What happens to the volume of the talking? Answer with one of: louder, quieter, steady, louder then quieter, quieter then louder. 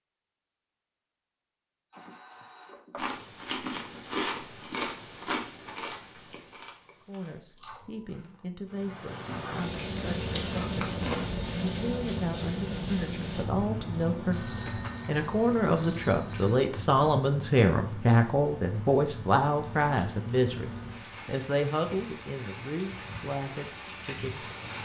louder then quieter.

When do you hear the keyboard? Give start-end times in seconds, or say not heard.
not heard.